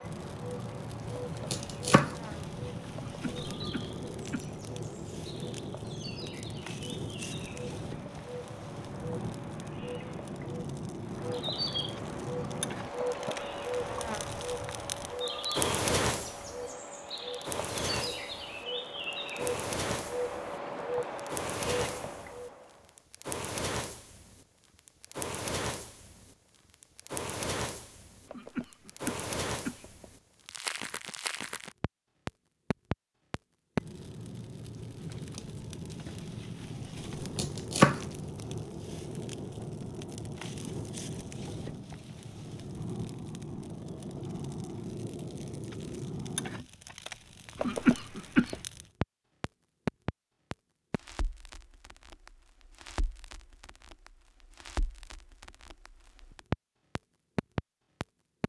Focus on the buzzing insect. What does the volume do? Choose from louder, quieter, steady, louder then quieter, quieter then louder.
louder.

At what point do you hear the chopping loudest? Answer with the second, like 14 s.
38 s.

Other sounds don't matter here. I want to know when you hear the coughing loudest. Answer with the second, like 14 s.
48 s.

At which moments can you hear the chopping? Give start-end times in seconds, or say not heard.
1.1-2.7, 37.4-38.6.